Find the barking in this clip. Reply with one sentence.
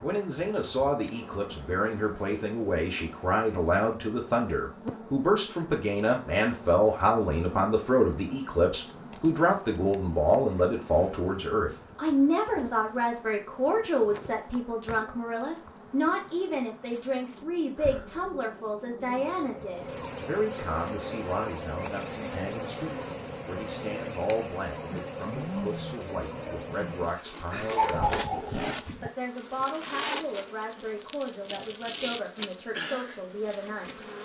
You can hear the barking from 27.6 to 29.1 s.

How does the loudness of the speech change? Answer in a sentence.
The loudness of the speech goes down.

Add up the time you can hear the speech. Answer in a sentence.
You can hear the speech for 34 seconds altogether.